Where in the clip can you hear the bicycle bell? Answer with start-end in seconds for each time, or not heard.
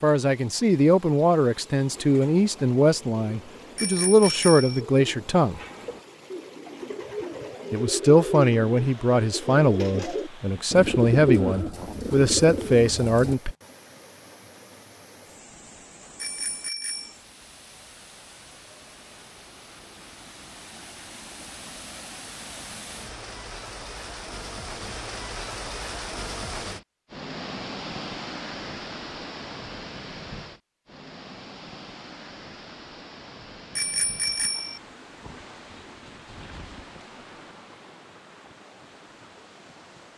3.8-4.8, 16.1-17.1, 33.8-34.8.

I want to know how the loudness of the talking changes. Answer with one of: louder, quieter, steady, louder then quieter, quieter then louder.
steady.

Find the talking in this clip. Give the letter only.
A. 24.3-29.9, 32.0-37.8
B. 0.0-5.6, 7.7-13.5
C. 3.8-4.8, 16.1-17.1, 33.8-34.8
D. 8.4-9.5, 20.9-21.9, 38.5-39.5
B.